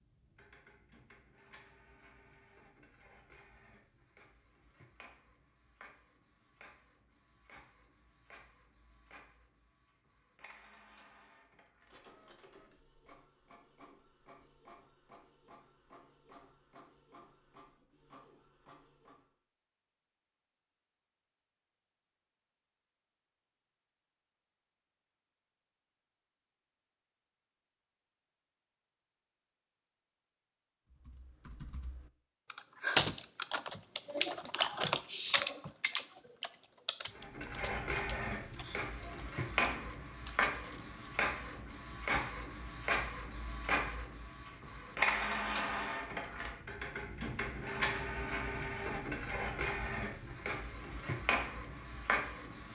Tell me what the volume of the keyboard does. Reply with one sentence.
The volume of the keyboard goes down.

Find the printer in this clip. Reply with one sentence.
The printer can be heard from 0.0 to 19.3 s and from 37.1 to 52.6 s.